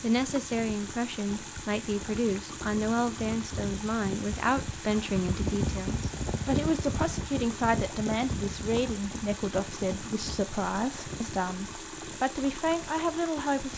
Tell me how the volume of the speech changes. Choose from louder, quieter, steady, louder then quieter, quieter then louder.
steady.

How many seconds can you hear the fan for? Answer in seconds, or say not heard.
14 s.